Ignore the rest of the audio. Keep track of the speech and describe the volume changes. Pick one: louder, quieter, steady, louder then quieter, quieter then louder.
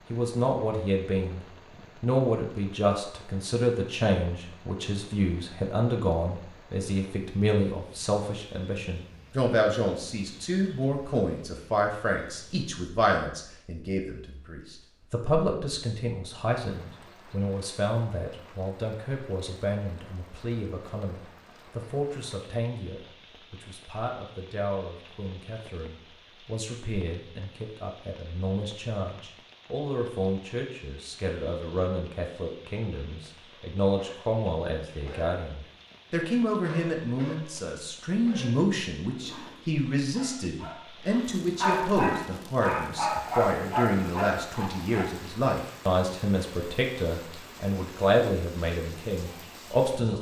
quieter then louder.